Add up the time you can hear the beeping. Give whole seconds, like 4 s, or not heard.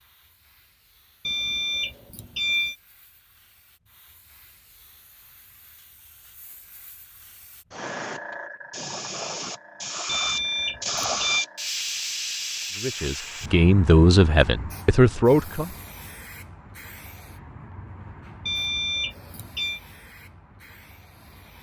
4 s.